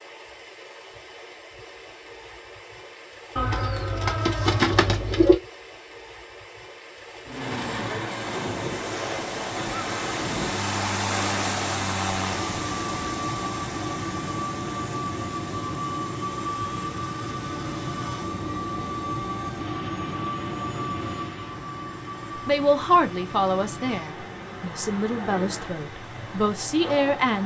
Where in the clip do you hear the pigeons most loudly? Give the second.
5 s.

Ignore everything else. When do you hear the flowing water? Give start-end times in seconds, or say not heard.
0.0-27.4.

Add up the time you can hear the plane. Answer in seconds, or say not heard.
20 s.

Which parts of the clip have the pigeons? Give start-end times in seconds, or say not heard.
3.4-5.3.